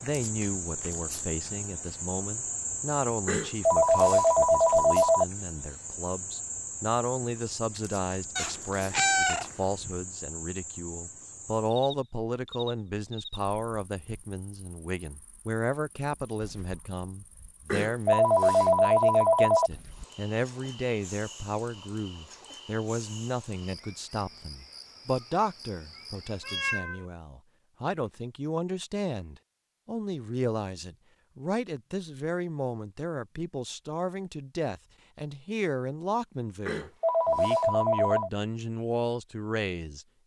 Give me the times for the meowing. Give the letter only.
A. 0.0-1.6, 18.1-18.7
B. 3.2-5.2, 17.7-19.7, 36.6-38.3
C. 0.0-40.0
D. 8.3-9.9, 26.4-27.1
D.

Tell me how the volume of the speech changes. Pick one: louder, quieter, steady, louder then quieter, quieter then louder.
steady.